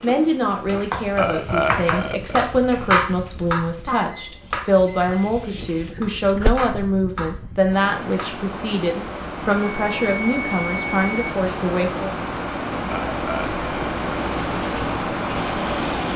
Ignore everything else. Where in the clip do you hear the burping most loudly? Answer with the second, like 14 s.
2 s.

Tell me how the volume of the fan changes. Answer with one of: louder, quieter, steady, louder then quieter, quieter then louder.
louder.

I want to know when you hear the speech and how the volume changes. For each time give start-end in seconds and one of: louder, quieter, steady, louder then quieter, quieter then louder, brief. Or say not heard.
0.0-12.2 steady.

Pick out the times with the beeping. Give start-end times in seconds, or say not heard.
3.9-5.7, 9.6-11.4.